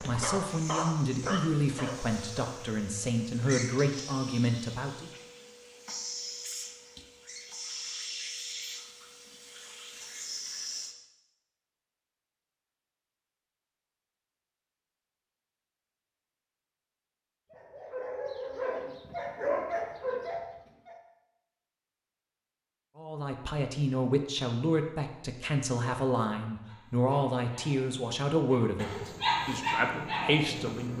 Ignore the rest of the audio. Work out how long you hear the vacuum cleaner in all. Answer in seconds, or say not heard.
11 s.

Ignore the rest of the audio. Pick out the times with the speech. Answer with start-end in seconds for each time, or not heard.
0.0-5.1, 22.9-30.9.